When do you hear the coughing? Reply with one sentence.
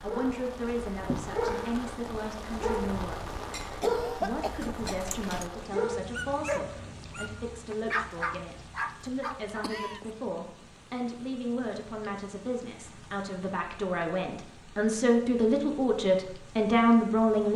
The coughing can be heard from 3.8 to 5.5 s and from 9.4 to 10.2 s.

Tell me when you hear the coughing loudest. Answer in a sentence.
The loudest moment of the coughing is at 4 seconds.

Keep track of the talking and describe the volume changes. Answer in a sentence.
The volume of the talking goes up.